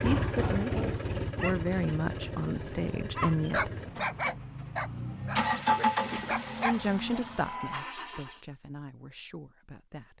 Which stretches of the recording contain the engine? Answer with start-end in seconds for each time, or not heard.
0.0-8.4.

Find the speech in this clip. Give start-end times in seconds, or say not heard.
0.0-3.7, 6.6-10.1.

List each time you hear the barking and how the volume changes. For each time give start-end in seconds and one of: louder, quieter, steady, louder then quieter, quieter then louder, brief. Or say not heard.
0.0-1.6 brief
3.1-7.2 quieter then louder.